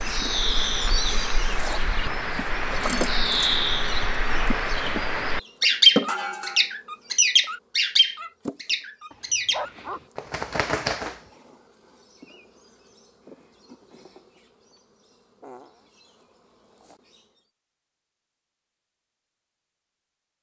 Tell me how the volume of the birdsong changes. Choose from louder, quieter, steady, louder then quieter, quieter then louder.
louder then quieter.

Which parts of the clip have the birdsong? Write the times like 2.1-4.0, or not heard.
0.0-11.2.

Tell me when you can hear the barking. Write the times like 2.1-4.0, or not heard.
9.1-10.1.